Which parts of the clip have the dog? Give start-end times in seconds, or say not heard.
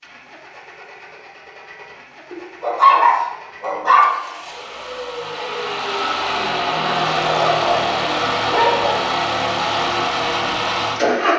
2.3-4.1, 7.2-8.9.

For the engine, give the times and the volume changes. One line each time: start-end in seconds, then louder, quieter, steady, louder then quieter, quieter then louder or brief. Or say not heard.
0.0-11.3 louder.